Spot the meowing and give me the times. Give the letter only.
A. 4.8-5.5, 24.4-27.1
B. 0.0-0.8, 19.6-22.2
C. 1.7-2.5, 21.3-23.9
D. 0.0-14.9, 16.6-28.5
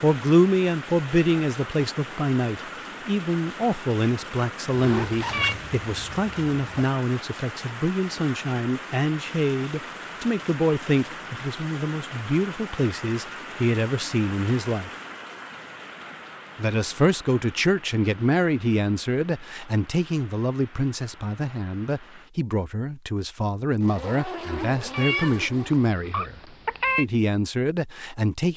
A.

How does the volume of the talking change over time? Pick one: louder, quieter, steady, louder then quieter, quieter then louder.
steady.